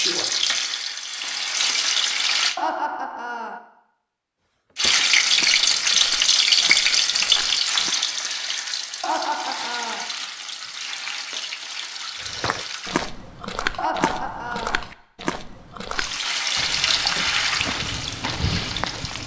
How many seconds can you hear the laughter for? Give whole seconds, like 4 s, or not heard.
3 s.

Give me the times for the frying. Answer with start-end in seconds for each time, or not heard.
0.0-2.5, 4.8-13.1, 15.9-19.2.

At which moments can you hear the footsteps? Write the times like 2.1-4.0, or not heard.
4.7-8.0, 12.2-19.2.